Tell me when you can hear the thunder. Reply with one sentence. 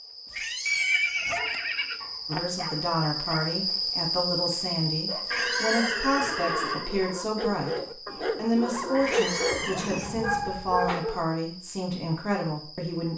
The thunder can't be heard in this clip.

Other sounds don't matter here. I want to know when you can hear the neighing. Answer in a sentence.
The neighing can be heard from 0.7 to 2.0 s, from 5.3 to 6.9 s and from 8.9 to 10.9 s.